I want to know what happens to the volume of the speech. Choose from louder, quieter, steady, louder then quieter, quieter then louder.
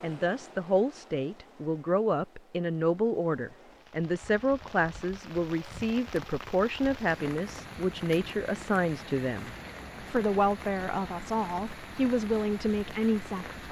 steady.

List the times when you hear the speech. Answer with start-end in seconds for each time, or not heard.
0.0-13.6.